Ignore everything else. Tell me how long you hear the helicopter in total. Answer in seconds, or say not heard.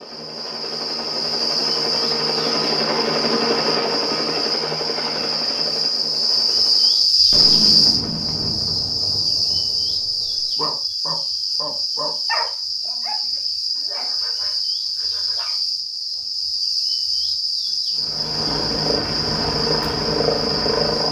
10 s.